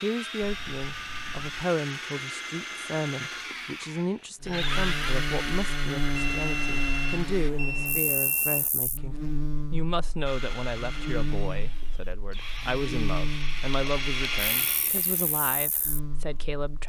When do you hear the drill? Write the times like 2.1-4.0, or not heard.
0.0-7.5, 10.2-15.4.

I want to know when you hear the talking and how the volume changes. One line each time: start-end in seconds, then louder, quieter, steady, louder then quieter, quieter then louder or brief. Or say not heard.
0.0-16.8 steady.